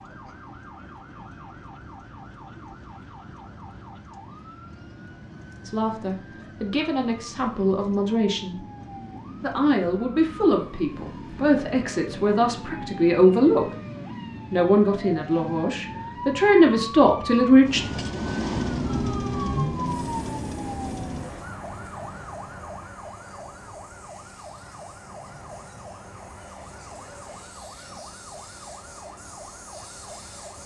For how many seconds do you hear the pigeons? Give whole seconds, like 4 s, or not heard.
not heard.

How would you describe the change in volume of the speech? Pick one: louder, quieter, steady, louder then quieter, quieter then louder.
louder.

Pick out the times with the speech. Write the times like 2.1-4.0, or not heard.
5.6-8.7, 9.4-13.7, 14.5-17.8.